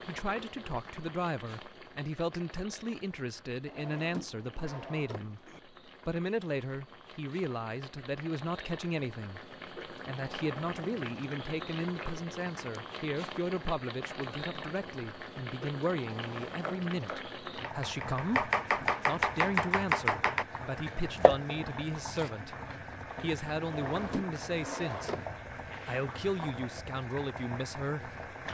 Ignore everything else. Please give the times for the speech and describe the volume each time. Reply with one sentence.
The speech can be heard from 0.1 to 22.6 s, at a steady volume; briefly from 23.2 to 25.1 s; and briefly from 25.8 to 28.1 s.